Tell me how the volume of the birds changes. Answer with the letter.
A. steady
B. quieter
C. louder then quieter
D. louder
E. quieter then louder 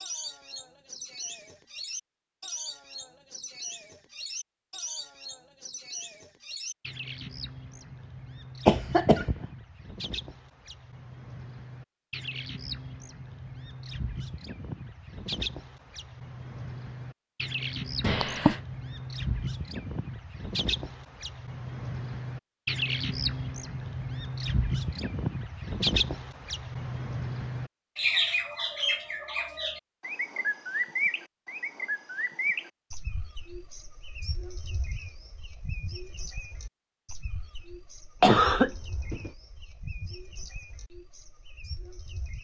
C.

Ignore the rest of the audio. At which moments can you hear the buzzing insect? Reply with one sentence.
You can't hear the buzzing insect here.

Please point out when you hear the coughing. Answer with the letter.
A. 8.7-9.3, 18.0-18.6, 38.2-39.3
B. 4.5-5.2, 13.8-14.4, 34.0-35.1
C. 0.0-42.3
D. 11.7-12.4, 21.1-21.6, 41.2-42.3
A.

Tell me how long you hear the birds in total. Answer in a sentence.
The birds can be heard for 42 seconds in total.